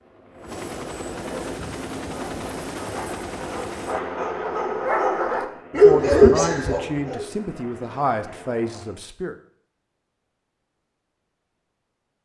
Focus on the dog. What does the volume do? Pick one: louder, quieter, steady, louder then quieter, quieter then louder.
louder.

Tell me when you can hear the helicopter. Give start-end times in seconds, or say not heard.
0.0-9.1.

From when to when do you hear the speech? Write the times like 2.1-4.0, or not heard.
5.8-9.3.